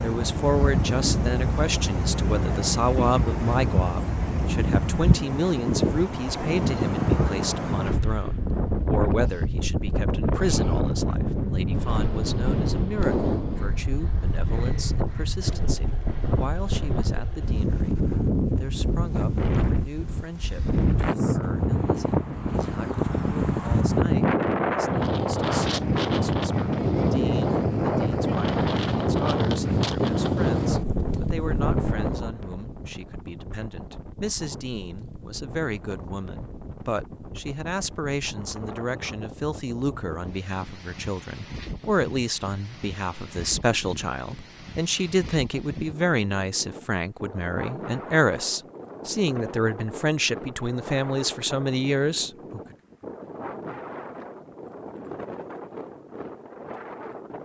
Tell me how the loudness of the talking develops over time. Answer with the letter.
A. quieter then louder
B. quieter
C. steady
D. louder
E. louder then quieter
A.